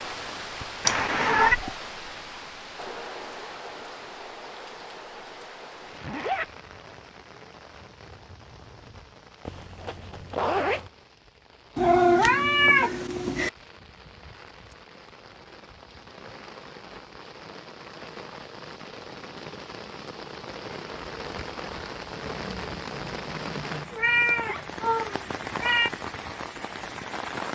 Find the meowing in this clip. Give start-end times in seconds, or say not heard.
0.8-1.6, 11.8-13.5, 23.9-25.9.